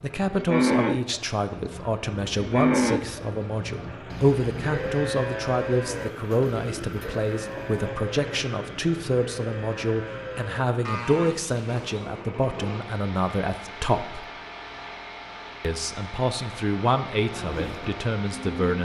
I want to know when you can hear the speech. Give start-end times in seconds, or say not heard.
0.0-14.2, 15.6-18.8.